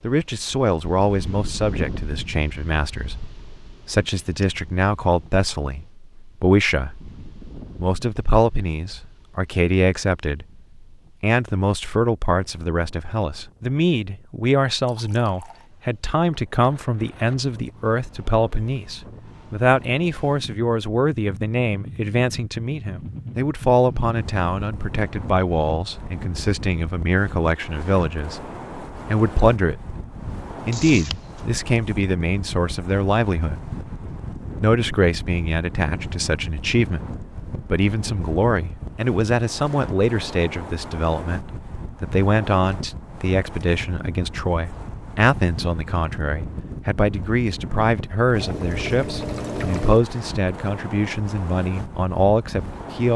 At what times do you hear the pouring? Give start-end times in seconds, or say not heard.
14.8-15.7, 30.7-31.4, 48.3-50.0.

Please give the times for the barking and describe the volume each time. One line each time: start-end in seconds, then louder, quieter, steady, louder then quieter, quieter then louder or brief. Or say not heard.
not heard.